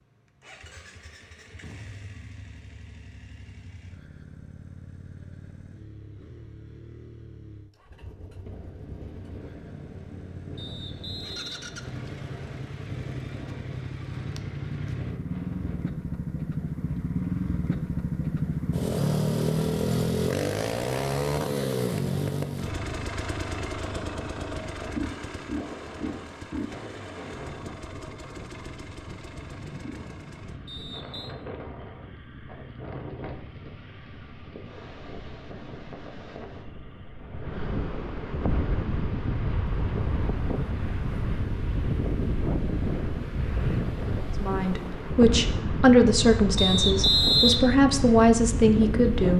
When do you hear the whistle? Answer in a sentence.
You can hear the whistle from 10.6 to 12.6 s, from 30.6 to 31.4 s and from 46.5 to 47.6 s.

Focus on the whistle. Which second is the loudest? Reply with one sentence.
The volume of the whistle peaks at 47 seconds.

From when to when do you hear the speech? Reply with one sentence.
You can hear the speech from 44.4 to 49.3 s.